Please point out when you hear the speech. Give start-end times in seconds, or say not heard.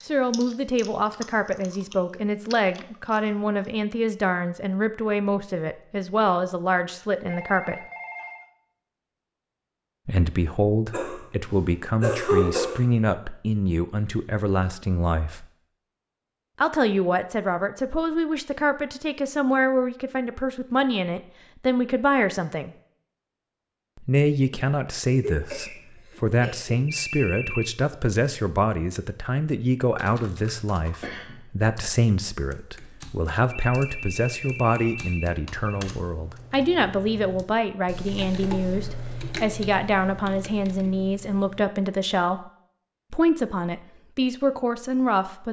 0.1-7.8, 10.1-15.4, 16.6-22.7, 23.9-42.5, 43.1-45.4.